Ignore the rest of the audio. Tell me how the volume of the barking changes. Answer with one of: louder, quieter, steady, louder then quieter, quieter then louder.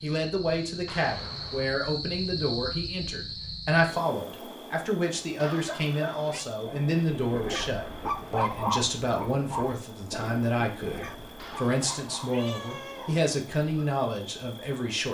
louder then quieter.